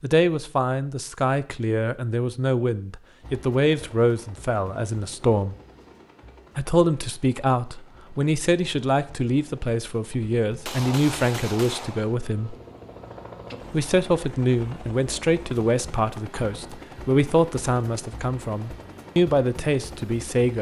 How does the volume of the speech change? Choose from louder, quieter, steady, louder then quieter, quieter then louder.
steady.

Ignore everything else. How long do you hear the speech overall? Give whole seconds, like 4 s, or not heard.
18 s.